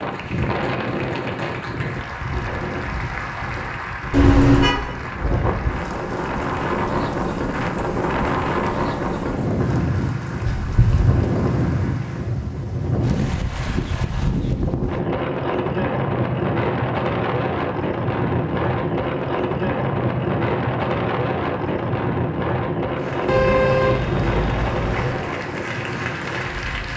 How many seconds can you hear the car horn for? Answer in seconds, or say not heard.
3 s.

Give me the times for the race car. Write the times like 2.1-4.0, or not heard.
not heard.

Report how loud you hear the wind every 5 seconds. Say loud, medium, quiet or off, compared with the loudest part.
medium, loud, loud, loud, loud, medium.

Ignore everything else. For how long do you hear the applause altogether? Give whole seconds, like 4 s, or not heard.
16 s.